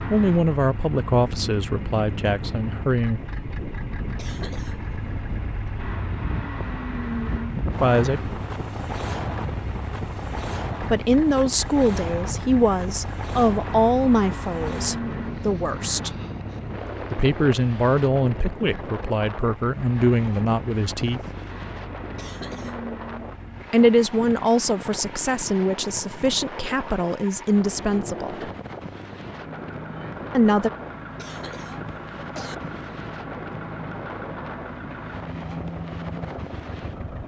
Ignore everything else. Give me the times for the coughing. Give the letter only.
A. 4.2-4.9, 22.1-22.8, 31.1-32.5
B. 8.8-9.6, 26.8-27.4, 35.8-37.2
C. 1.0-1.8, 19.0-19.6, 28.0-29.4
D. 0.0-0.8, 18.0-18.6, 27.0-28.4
A.